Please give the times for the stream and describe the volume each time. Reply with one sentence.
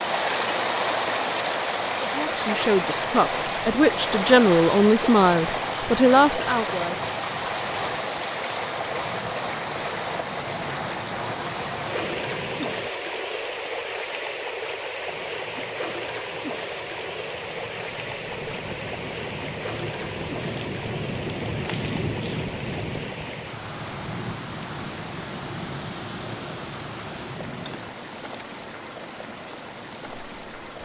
You can hear the stream from 0.0 to 30.8 s, getting quieter.